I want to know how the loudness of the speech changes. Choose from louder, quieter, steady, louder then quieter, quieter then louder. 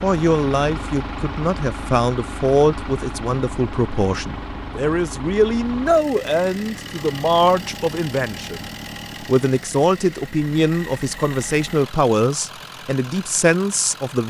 steady.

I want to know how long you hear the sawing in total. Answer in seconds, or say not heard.
not heard.